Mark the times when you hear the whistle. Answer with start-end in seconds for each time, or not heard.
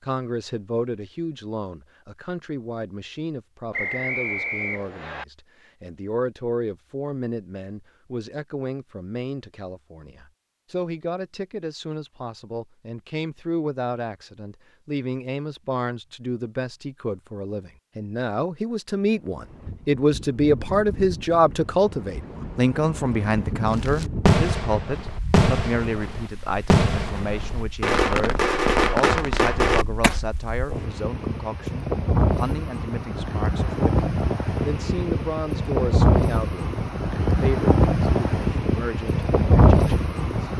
3.7-5.2.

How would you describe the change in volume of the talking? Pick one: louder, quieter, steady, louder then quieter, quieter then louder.
louder then quieter.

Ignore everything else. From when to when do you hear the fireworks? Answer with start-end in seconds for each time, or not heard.
23.6-30.2.